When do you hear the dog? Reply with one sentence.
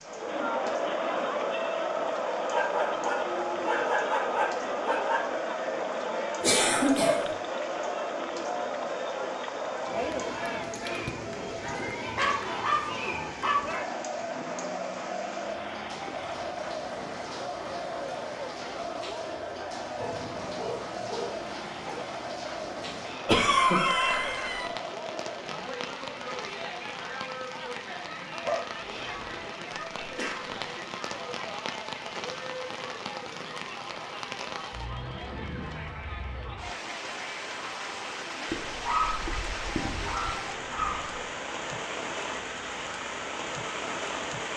The dog can be heard from 2.5 to 5.2 s, from 12.2 to 13.8 s, from 20.0 to 22.0 s, from 28.4 to 29.5 s and from 38.5 to 41.2 s.